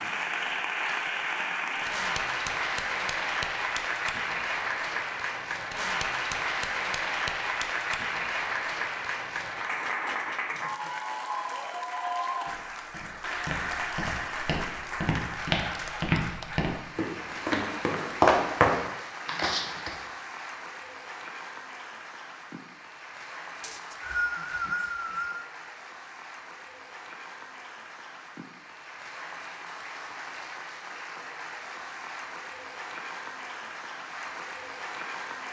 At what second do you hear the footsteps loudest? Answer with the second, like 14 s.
18 s.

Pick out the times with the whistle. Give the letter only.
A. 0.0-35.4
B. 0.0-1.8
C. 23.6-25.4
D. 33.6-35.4
C.